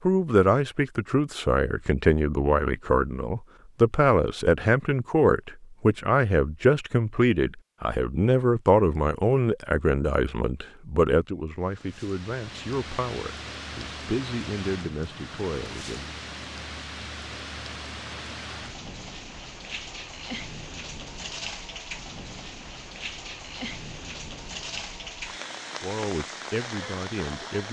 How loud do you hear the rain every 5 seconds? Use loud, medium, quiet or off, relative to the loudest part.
off, off, loud, loud, loud, loud.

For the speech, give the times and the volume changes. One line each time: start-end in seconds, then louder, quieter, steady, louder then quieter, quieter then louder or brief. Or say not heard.
0.1-16.1 quieter
25.8-27.6 brief.